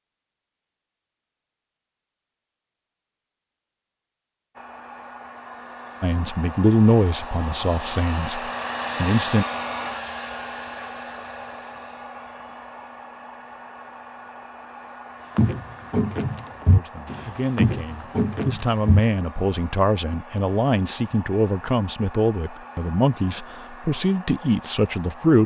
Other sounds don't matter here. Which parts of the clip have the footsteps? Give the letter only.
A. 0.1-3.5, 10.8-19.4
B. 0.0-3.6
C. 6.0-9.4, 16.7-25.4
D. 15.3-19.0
D.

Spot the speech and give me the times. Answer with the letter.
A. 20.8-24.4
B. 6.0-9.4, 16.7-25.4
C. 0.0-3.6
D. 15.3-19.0
B.